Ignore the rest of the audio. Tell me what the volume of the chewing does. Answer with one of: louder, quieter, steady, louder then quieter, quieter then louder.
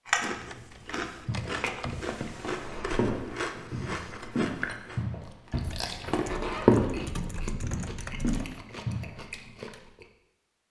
quieter.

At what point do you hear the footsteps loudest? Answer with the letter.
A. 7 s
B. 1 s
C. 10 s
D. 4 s
A.